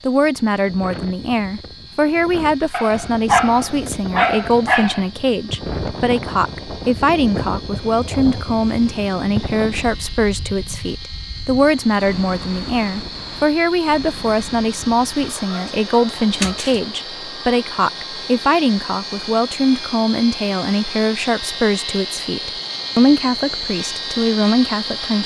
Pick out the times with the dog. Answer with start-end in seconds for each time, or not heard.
2.7-5.0, 15.2-16.8.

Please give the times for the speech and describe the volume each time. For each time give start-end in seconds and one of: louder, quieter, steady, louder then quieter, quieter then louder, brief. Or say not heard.
0.0-25.2 steady.